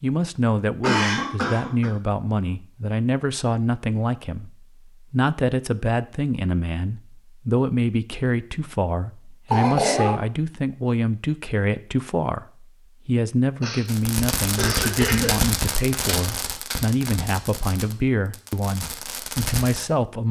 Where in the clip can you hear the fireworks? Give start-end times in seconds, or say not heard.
13.8-19.9.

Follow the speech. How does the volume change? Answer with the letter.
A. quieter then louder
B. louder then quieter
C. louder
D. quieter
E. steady
E.